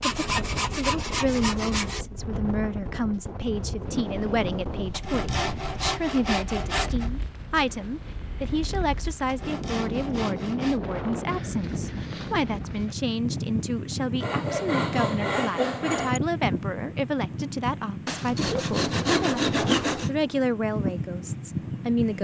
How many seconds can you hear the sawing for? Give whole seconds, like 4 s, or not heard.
10 s.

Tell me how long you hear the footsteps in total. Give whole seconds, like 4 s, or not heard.
not heard.